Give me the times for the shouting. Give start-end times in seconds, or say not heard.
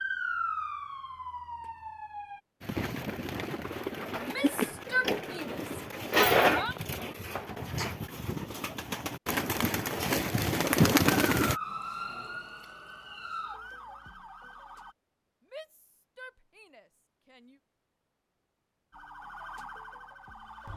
4.2-6.8, 15.4-17.6.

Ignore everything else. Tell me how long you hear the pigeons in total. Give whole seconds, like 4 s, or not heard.
9 s.